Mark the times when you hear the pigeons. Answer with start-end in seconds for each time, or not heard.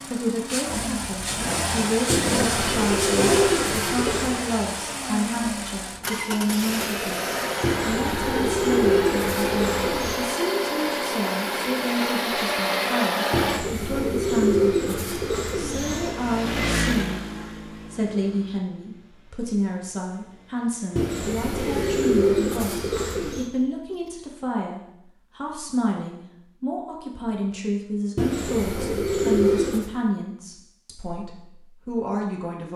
2.1-4.3, 7.6-10.2, 13.3-16.1, 20.9-23.5, 28.1-29.9.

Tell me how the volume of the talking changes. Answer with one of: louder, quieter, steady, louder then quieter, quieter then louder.
steady.